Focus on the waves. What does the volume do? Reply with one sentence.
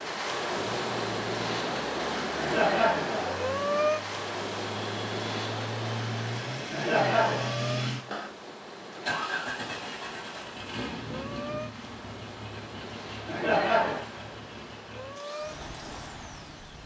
The loudness of the waves goes down.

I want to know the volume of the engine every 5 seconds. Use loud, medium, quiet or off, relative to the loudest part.
medium, loud, medium, quiet.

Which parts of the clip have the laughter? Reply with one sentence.
The laughter can be heard from 2.4 to 3.4 s, from 6.7 to 7.5 s and from 13.2 to 14.1 s.